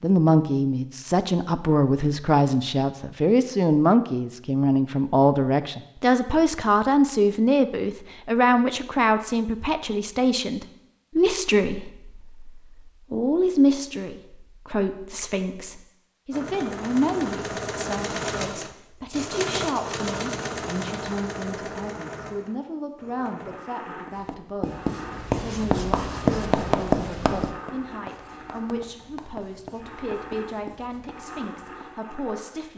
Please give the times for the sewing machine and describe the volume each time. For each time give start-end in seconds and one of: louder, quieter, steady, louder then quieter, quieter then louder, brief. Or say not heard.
16.3-32.7 quieter.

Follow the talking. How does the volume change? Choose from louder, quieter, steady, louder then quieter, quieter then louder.
quieter.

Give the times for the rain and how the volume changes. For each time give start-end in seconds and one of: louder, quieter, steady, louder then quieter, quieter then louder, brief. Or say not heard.
not heard.